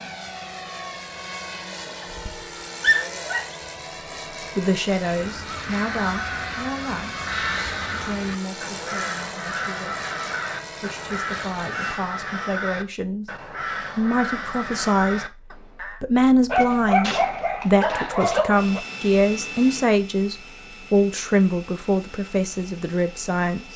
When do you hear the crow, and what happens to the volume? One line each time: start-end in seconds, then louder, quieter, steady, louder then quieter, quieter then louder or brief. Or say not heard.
5.0-16.0 steady.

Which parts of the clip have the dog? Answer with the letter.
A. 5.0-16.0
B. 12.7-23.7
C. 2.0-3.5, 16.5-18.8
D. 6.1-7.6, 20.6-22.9
C.